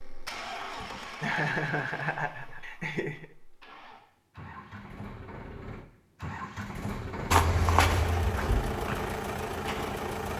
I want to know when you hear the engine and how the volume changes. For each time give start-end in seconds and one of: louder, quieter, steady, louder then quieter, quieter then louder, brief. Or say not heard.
0.0-10.3 quieter then louder.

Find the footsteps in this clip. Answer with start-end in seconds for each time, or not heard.
7.3-10.3.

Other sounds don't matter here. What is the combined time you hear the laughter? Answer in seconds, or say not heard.
2 s.